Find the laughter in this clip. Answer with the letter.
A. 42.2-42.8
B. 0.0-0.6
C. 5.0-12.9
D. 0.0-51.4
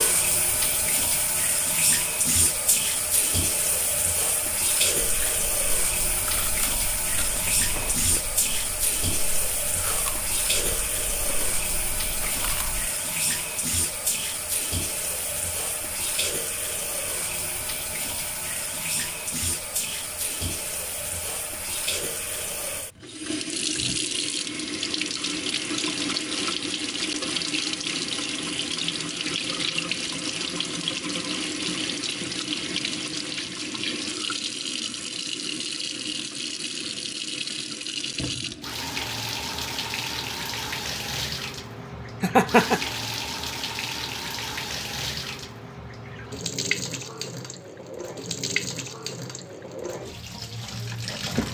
A.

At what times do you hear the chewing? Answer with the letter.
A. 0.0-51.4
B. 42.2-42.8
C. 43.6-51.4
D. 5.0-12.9
D.